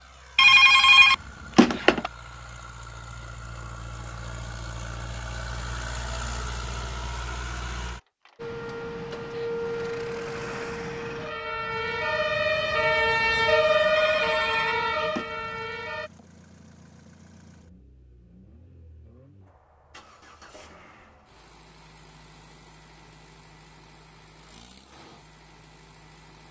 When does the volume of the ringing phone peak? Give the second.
1 s.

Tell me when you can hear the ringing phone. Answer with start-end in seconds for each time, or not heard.
0.3-2.1, 13.9-15.2.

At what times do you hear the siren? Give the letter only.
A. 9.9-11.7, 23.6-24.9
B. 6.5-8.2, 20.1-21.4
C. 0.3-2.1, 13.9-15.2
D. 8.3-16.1
D.